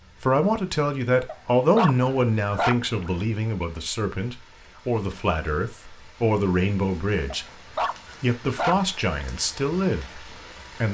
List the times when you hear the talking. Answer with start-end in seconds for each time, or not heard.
0.2-7.5, 8.2-10.8.